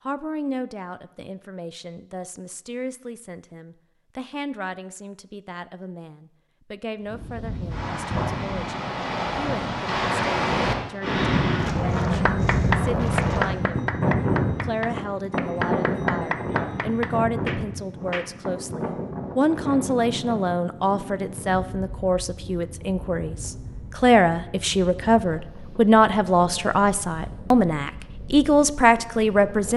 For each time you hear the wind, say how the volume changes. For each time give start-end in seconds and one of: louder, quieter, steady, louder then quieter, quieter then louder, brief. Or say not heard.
7.0-29.7 quieter.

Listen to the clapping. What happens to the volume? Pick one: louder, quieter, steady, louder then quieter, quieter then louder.
quieter.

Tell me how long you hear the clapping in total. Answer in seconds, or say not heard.
6 s.